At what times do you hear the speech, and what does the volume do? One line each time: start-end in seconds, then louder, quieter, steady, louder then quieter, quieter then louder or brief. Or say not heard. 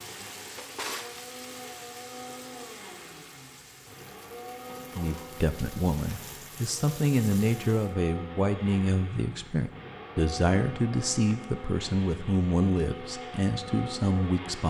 5.0-14.6 steady.